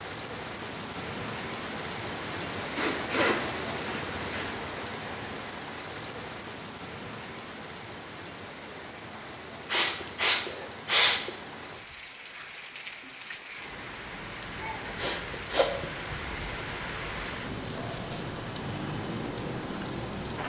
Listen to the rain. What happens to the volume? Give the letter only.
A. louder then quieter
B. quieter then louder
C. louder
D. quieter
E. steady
B.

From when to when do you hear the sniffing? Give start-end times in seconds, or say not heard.
2.8-4.5, 9.7-11.3, 14.9-15.8.